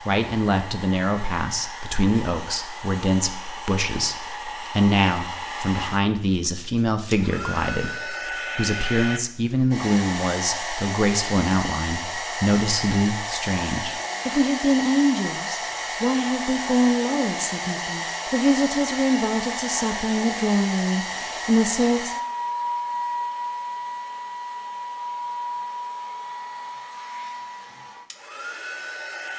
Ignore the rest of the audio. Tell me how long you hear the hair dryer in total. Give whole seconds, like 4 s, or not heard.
29 s.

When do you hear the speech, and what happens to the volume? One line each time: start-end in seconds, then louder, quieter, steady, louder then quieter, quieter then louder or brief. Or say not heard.
0.0-22.1 steady.